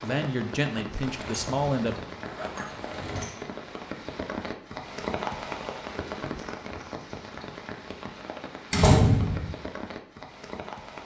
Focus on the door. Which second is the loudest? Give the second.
9 s.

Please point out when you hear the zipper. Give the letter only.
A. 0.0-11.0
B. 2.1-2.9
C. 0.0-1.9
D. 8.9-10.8
B.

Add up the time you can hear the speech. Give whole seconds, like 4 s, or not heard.
2 s.